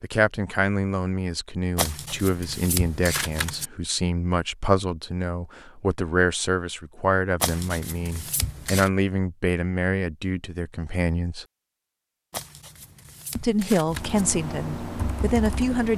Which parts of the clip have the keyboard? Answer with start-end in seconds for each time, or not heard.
13.8-15.9.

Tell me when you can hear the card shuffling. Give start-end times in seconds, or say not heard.
1.8-3.7, 7.4-8.9, 12.3-14.2.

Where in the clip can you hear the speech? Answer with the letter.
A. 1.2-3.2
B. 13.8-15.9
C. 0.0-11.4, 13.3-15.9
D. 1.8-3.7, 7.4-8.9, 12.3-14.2
C.